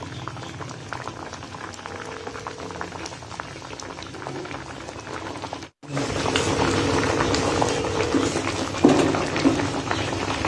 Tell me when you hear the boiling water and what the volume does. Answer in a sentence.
The boiling water can be heard from 0.0 to 10.4 s, getting louder.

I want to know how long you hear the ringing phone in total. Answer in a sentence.
You can hear the ringing phone for 3 seconds altogether.